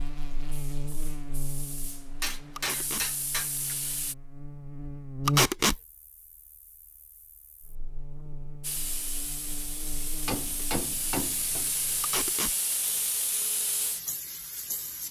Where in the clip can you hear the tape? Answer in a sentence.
You can hear the tape from 2.5 to 3.0 s, from 5.2 to 5.8 s and from 12.0 to 12.6 s.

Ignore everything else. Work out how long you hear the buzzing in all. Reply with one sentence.
The buzzing can be heard for 12 seconds in total.